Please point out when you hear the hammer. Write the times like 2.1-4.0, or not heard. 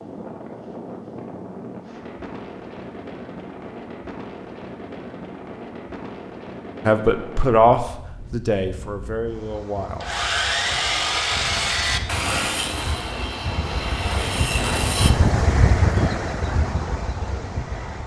not heard.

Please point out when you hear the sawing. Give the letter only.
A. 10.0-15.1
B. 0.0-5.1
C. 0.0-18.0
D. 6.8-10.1
A.